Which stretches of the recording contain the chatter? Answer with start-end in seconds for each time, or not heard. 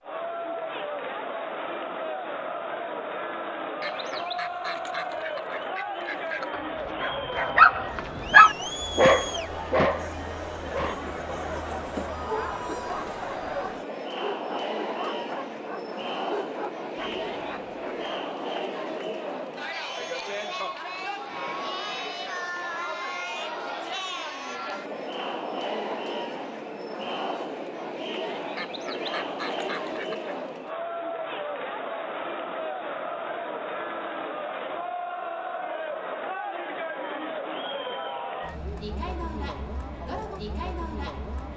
0.0-41.5.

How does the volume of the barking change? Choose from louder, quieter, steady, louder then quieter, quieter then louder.
quieter.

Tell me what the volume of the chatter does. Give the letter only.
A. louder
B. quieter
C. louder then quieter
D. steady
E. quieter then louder
D.